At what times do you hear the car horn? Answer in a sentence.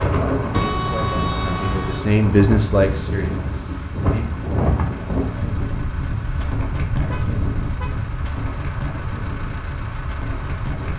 The car horn can be heard from 0.5 to 2.0 s and from 7.1 to 8.1 s.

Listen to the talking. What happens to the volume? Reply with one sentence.
The volume of the talking goes up, then down.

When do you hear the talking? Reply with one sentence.
You can hear the talking from 0.0 to 4.2 s.